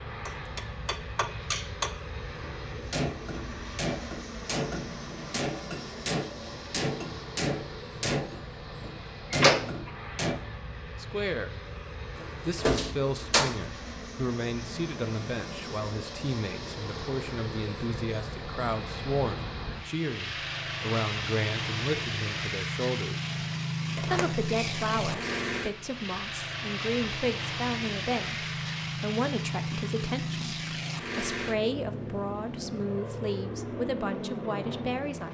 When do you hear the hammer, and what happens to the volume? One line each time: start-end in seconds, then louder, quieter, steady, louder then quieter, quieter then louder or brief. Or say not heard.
0.2-10.4 steady.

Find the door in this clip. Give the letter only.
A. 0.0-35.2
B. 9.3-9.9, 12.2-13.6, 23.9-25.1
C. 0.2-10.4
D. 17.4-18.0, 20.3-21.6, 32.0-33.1
B.